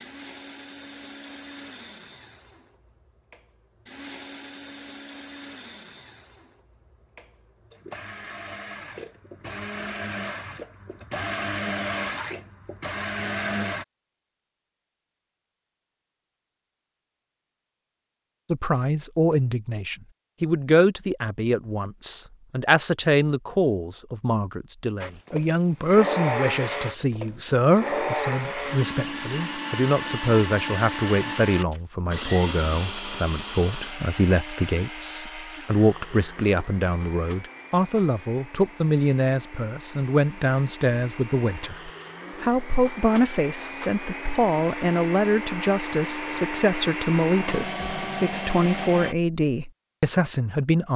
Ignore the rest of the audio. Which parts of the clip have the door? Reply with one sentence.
The door can't be heard in this clip.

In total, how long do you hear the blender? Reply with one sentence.
You can hear the blender for 38 seconds altogether.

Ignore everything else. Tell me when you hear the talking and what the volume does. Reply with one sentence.
The talking can be heard from 18.5 to 50.9 s, at a steady volume.